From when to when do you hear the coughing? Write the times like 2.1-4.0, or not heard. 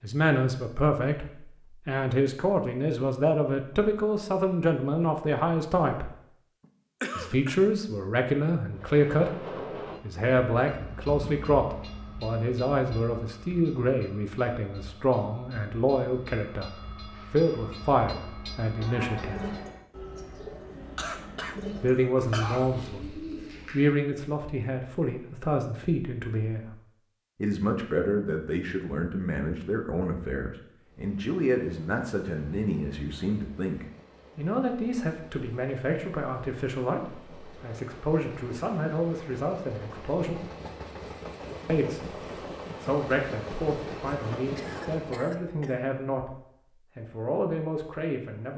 6.6-7.6, 20.9-22.7, 44.2-45.8.